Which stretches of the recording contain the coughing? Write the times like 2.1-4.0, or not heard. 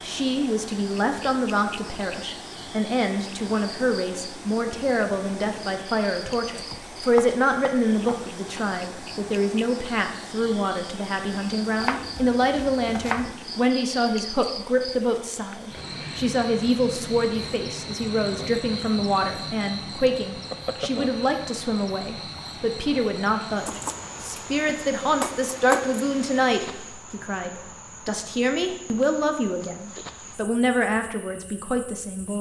not heard.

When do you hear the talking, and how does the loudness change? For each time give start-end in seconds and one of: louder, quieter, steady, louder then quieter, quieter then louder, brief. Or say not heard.
0.0-32.3 steady.